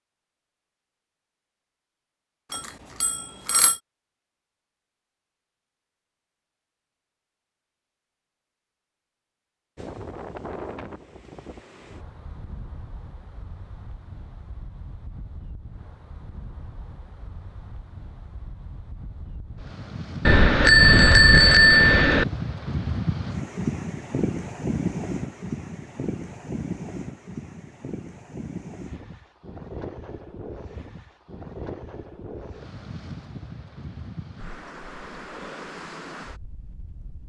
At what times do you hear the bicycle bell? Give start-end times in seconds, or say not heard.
2.5-3.8, 20.2-22.2.